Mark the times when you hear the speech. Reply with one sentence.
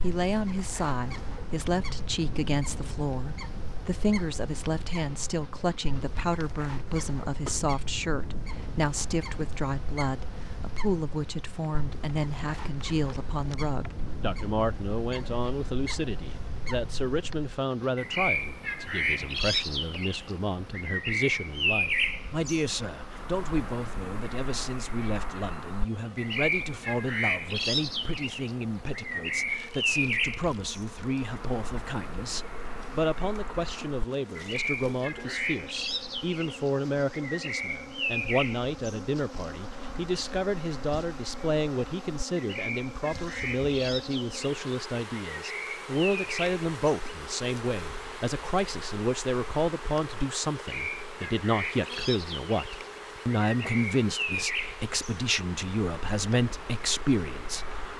You can hear the speech from 0.0 to 57.8 s.